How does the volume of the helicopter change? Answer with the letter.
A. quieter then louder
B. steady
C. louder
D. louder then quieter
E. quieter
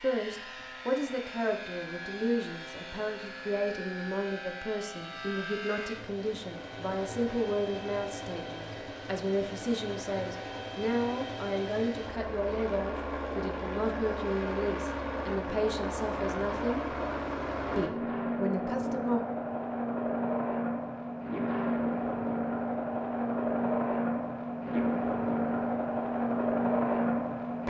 C.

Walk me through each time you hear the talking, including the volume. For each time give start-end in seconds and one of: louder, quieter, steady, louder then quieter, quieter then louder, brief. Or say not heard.
0.0-16.9 steady
17.8-19.2 brief.